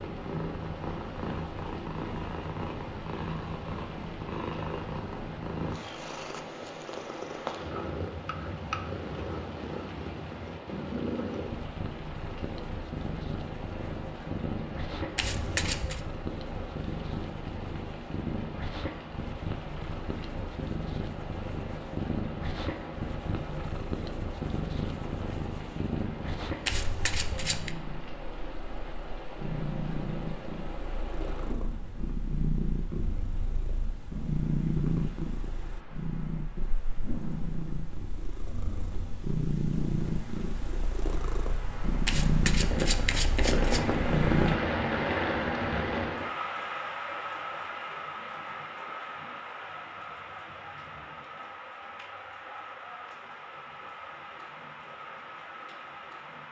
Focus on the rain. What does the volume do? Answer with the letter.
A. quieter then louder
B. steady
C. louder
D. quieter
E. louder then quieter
C.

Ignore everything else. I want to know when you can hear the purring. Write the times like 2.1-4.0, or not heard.
0.0-44.6.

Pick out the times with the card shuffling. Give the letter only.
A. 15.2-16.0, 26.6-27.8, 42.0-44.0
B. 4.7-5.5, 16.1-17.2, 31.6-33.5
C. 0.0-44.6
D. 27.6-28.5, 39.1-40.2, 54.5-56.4
A.